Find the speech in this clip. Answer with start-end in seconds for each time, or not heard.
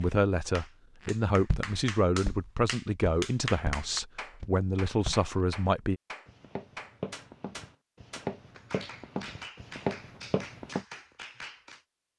0.0-6.0.